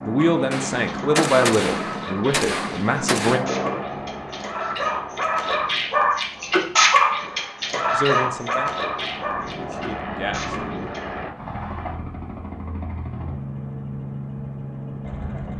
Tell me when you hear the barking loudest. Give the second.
7 s.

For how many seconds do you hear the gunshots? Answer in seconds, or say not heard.
3 s.